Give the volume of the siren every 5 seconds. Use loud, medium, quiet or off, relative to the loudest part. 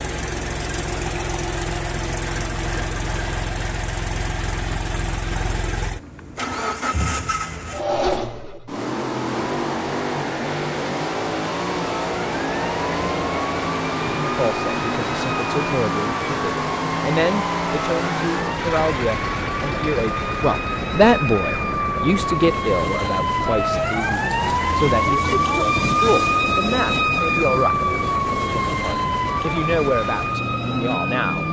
off, off, medium, medium, loud, loud, medium.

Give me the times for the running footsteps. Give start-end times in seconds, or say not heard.
not heard.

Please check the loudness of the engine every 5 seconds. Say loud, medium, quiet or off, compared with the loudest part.
loud, loud, loud, loud, medium, medium, loud.